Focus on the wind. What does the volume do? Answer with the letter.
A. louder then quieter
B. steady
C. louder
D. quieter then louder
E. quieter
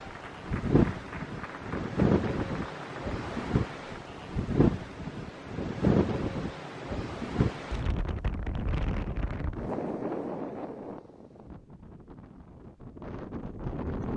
E.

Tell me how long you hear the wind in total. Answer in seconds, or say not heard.
14 s.